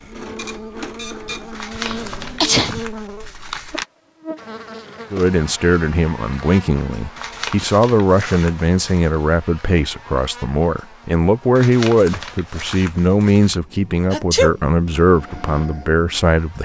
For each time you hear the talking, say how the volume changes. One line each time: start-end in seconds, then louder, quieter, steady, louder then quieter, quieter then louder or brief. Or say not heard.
5.1-16.6 steady.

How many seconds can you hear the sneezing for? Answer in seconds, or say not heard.
2 s.